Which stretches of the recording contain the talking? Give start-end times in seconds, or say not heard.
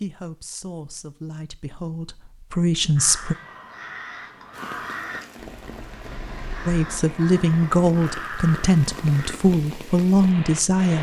0.0-3.4, 6.7-10.9.